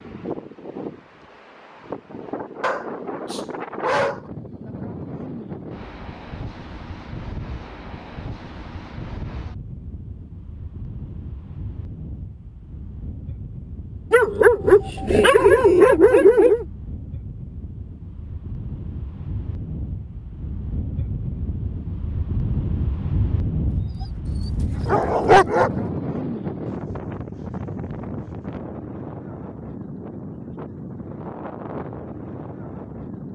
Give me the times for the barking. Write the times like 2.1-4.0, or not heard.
2.6-4.3, 14.1-16.6, 24.9-25.7.